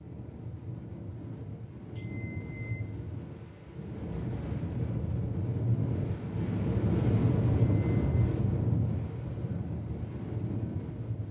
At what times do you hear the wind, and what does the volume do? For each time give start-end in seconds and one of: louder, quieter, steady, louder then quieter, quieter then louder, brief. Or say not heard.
0.0-11.2 louder then quieter.